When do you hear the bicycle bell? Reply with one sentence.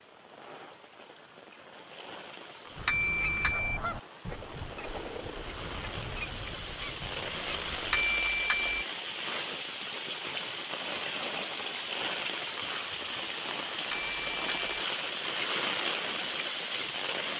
You can hear the bicycle bell from 2.9 to 3.8 s, from 7.9 to 8.8 s and from 13.9 to 14.8 s.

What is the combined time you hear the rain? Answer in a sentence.
The rain can be heard for 17 seconds in total.